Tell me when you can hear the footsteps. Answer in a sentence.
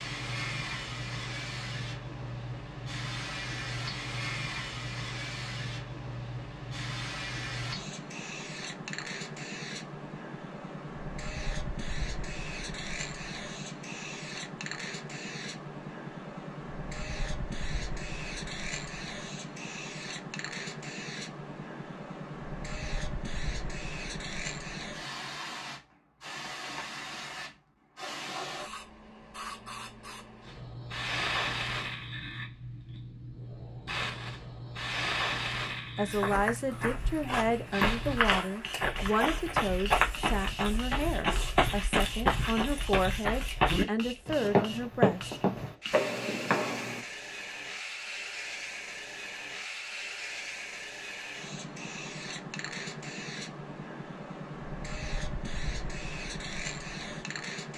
The footsteps can be heard from 36.1 to 47.0 s.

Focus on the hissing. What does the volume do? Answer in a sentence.
The volume of the hissing stays about the same.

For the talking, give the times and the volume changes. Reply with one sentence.
The talking can be heard from 36.0 to 45.3 s, at a steady volume.